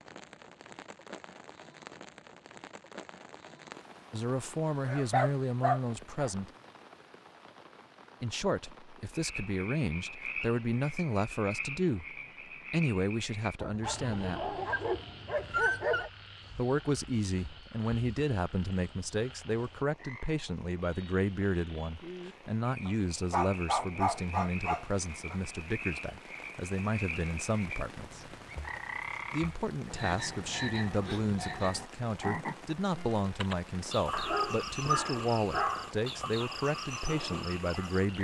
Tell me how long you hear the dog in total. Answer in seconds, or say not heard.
8 s.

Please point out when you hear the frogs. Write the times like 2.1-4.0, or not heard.
9.1-38.1.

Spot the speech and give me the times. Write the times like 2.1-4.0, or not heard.
4.1-6.5, 8.2-14.6, 16.6-28.3, 29.3-38.1.